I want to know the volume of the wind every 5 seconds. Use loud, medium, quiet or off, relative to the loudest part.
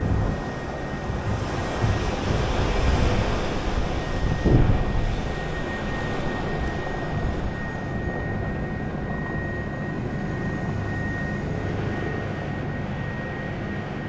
loud, medium, medium.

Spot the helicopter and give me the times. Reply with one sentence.
The helicopter can be heard from 0.0 to 14.0 s.